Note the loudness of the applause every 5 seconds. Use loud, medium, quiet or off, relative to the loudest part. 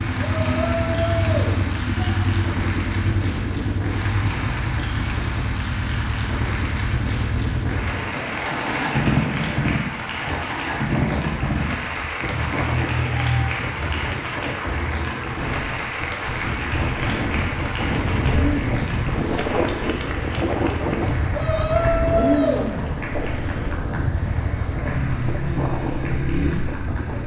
loud, loud, loud, loud, medium, medium.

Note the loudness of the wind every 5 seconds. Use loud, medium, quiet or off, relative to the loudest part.
medium, medium, medium, loud, loud, medium.